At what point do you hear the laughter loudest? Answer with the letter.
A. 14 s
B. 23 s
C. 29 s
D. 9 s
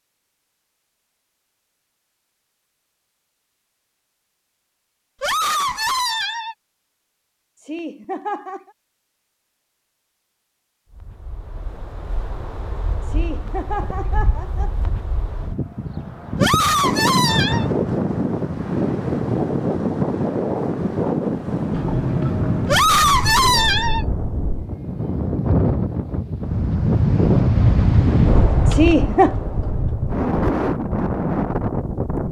C.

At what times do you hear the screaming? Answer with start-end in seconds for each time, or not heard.
5.2-6.5, 16.4-17.7, 22.6-24.1.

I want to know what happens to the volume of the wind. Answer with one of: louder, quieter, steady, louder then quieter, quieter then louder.
louder.